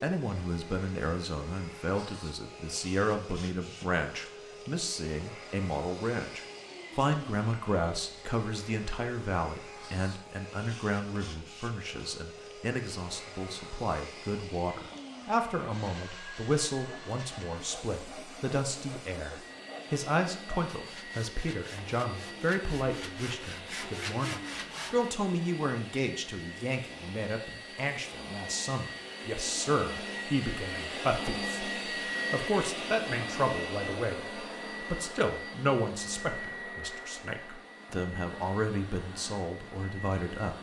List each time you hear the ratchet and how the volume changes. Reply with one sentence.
The ratchet can't be heard in this clip.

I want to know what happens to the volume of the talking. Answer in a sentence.
The volume of the talking stays about the same.